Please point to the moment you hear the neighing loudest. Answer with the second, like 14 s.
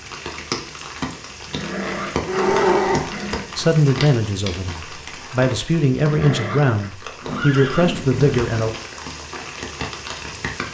3 s.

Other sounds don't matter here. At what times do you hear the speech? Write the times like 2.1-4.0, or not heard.
3.5-8.7.